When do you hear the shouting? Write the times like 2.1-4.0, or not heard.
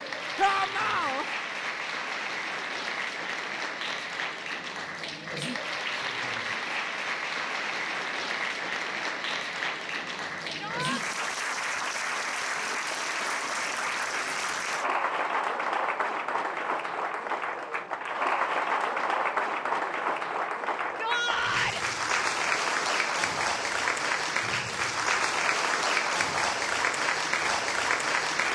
0.3-1.2, 10.5-11.0, 20.8-21.9.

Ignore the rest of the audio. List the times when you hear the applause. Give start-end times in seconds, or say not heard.
0.0-28.5.